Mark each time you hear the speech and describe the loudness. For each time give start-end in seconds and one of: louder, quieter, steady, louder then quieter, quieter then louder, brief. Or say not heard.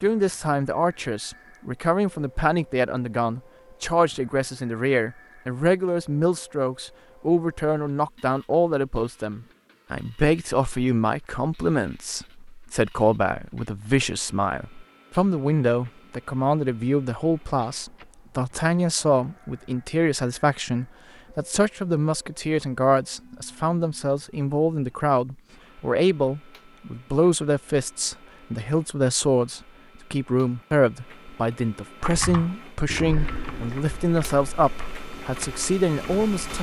0.0-36.5 steady.